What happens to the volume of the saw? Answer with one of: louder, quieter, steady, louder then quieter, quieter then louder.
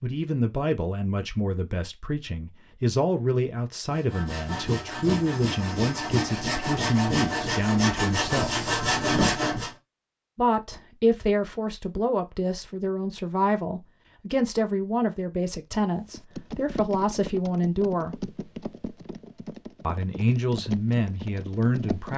louder.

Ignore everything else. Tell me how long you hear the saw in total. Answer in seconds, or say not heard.
6 s.